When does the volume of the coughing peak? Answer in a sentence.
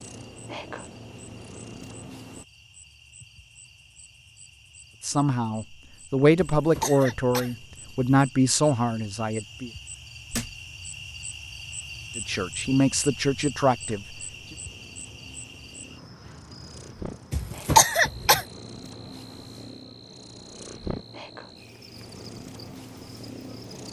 The volume of the coughing peaks at 18 seconds.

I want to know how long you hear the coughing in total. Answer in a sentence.
The coughing can be heard for 3 seconds in total.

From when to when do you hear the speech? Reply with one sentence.
The speech can be heard from 5.0 to 9.7 s and from 12.2 to 14.2 s.